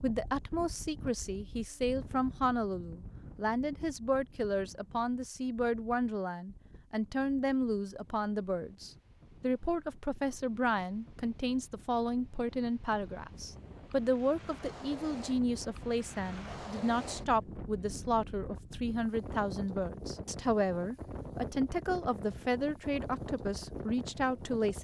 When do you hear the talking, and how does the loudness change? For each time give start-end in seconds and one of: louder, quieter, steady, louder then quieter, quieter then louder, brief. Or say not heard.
0.0-24.7 steady.